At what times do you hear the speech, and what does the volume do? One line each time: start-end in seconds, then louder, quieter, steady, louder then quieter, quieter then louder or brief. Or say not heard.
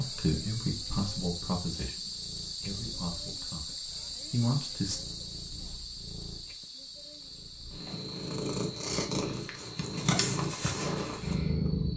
0.0-5.0 quieter then louder.